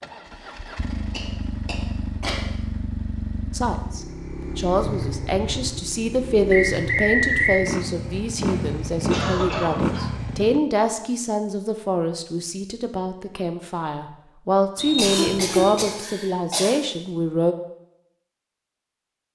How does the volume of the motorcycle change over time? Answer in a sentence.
The loudness of the motorcycle goes up.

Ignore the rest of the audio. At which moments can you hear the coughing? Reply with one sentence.
You can hear the coughing from 0.9 to 2.5 s, from 9.1 to 10.2 s and from 14.8 to 16.8 s.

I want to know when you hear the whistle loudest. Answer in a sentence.
The loudest moment of the whistle is at 7 seconds.